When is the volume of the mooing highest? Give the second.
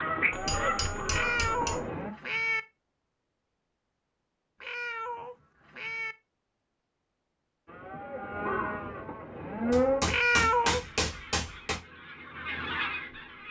10 s.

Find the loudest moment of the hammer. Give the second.
11 s.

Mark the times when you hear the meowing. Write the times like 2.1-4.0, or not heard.
1.1-2.6, 4.6-6.2, 10.1-10.8.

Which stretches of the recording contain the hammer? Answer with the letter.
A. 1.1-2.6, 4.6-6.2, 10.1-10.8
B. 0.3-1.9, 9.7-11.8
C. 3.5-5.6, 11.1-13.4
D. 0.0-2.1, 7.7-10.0
B.